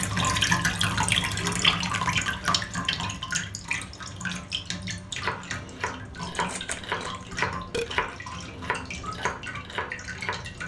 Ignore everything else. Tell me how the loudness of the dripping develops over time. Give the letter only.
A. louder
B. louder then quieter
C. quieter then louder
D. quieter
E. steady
D.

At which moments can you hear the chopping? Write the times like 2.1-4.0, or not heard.
5.1-10.6.